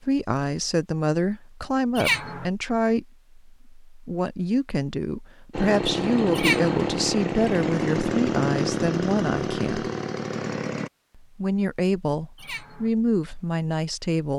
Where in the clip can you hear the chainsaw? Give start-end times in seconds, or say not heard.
5.5-10.9.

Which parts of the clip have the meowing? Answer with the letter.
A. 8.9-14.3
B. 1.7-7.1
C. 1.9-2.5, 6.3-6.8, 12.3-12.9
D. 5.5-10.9
C.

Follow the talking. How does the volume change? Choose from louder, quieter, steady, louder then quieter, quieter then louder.
steady.